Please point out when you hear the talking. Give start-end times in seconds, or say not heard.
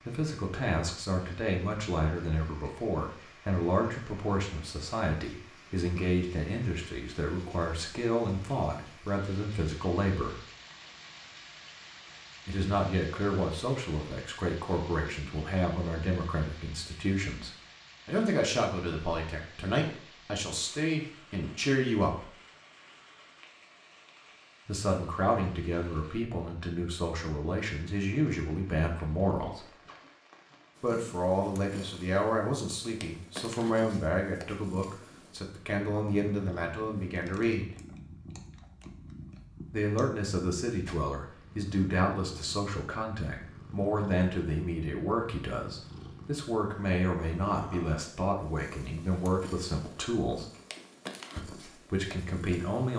0.0-10.4, 12.4-22.3, 24.6-29.7, 30.8-37.8, 39.7-50.5, 51.4-52.9.